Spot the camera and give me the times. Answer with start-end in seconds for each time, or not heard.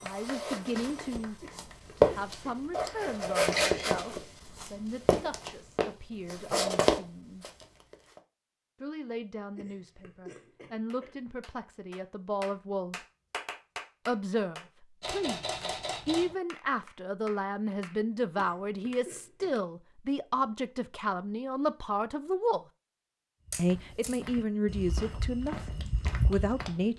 3.5-4.0, 15.0-16.4, 23.5-24.2.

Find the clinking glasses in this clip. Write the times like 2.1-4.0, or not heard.
not heard.